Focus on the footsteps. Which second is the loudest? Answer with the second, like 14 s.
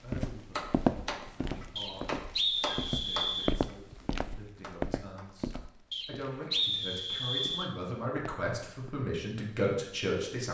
1 s.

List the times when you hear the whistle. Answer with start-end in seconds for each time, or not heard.
1.8-3.5, 5.9-7.7.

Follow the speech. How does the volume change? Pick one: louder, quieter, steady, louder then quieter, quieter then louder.
louder.